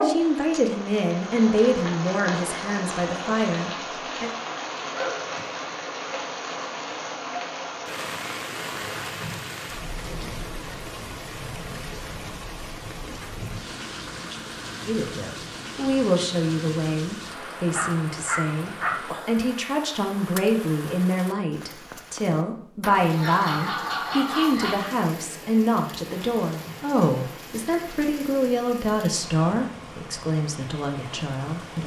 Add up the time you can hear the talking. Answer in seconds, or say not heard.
21 s.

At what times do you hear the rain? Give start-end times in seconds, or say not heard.
0.0-31.8.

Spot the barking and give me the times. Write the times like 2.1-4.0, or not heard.
4.8-5.7, 17.7-18.9, 23.0-24.8.